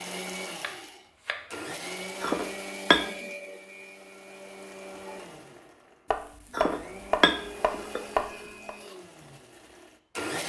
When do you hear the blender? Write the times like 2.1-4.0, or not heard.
0.0-10.4.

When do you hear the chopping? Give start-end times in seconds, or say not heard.
0.6-1.4, 6.1-8.7.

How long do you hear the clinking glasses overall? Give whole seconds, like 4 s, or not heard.
2 s.